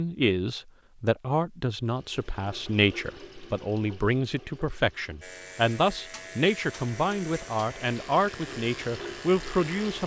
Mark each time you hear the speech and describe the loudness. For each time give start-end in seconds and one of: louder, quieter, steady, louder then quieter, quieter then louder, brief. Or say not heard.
0.0-10.0 steady.